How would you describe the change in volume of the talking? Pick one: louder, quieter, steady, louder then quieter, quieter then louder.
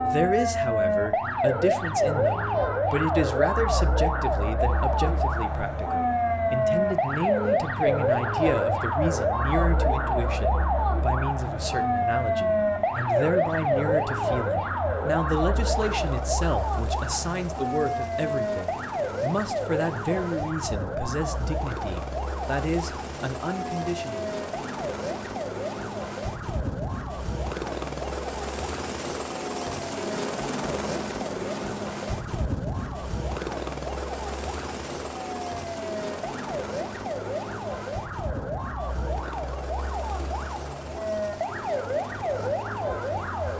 steady.